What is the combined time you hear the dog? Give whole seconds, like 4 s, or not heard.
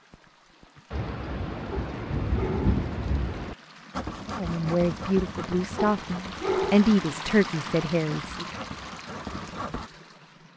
2 s.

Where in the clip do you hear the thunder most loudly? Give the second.
3 s.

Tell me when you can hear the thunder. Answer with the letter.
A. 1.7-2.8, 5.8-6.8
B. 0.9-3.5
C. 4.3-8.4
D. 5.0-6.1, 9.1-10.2
B.